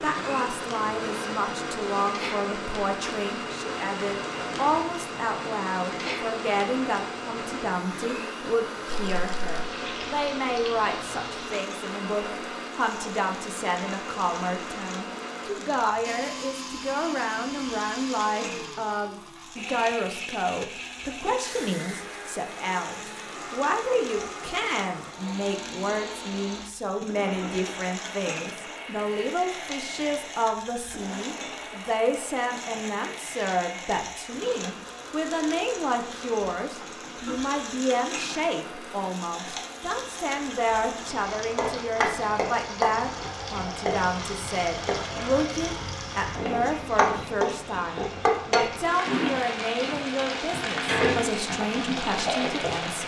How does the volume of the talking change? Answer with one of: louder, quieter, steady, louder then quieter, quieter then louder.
steady.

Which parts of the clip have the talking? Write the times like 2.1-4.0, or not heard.
0.0-53.0.